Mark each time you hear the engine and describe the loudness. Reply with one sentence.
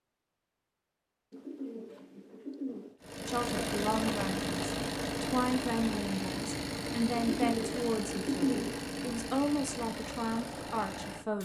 The engine can be heard from 3.0 to 11.4 s, getting quieter.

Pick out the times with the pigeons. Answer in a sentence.
You can hear the pigeons from 1.3 to 3.0 s and from 7.1 to 8.9 s.